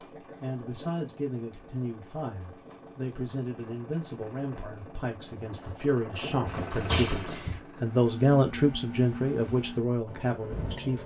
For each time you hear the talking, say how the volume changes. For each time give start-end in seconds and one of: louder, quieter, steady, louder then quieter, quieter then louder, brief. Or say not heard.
0.2-11.0 louder.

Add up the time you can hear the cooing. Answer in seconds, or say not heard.
not heard.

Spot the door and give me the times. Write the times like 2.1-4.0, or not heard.
6.5-7.6.